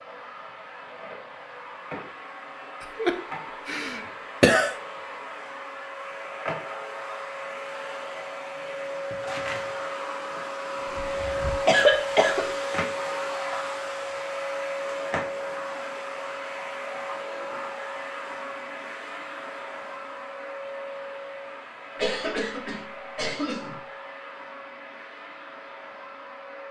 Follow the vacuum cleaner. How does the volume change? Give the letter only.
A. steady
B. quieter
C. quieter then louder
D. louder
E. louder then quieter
E.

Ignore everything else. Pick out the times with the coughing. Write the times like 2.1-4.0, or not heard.
3.0-4.8, 10.8-12.4, 21.9-23.8.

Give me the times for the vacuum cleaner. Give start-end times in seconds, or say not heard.
0.0-26.6.